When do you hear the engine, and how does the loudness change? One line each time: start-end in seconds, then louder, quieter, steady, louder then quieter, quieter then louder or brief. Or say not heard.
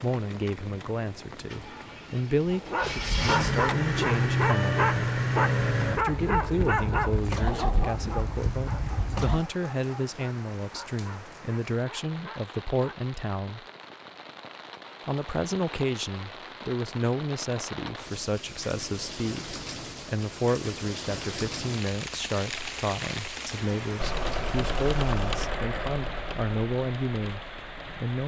0.1-9.4 louder then quieter
23.9-27.9 quieter.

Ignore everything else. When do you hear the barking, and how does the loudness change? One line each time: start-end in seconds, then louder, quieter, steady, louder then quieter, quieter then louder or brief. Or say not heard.
2.5-13.1 quieter.